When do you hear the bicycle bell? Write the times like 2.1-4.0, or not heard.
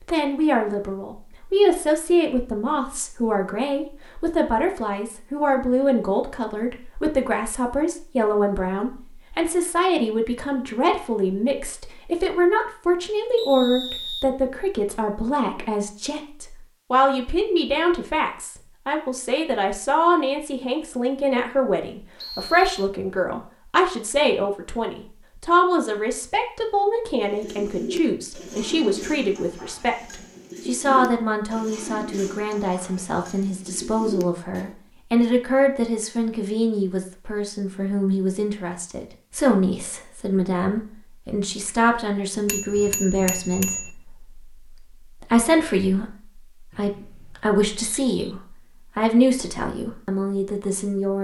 42.5-43.9.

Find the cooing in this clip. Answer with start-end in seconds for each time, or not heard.
27.2-34.8.